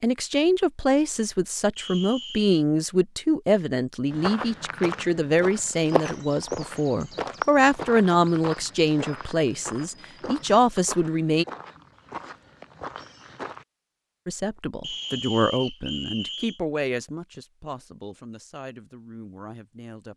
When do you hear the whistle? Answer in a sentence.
The whistle can be heard from 1.8 to 2.5 s and from 14.8 to 16.6 s.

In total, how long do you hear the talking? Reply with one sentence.
You can hear the talking for 17 seconds altogether.